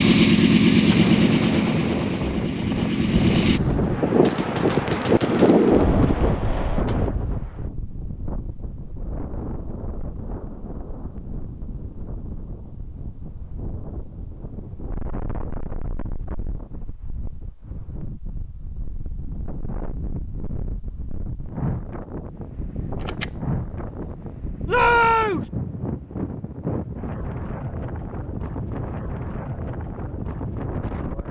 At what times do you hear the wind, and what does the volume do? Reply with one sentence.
You can hear the wind from 0.0 to 31.2 s, getting quieter then louder.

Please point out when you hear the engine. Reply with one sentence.
The engine can be heard from 0.0 to 3.6 s.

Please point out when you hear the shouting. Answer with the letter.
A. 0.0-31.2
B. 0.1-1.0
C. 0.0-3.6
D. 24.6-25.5
D.